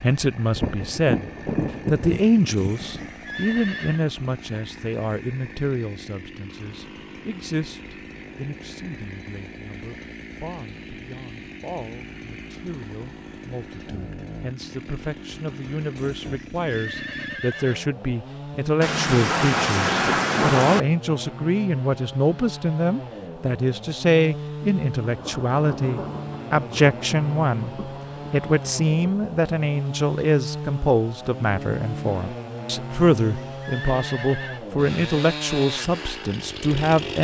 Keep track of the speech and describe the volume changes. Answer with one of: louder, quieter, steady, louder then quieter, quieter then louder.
quieter then louder.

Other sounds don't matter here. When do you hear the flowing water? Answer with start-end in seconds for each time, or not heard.
not heard.